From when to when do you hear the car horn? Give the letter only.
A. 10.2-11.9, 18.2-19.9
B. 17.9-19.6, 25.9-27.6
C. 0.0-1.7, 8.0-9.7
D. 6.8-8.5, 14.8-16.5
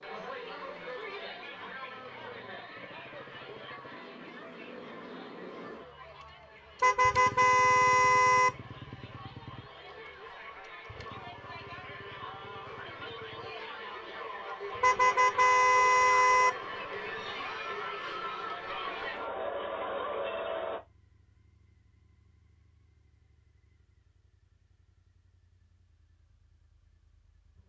D.